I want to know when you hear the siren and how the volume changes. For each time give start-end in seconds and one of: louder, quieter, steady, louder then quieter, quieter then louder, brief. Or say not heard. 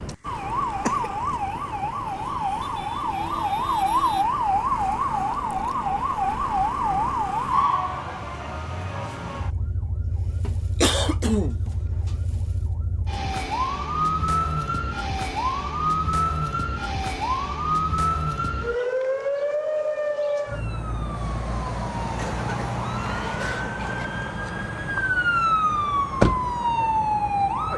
0.0-27.7 steady.